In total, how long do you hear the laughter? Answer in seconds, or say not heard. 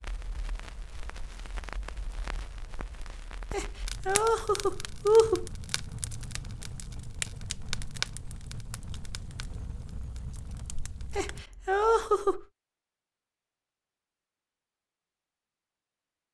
3 s.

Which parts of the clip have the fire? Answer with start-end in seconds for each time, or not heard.
0.0-11.4.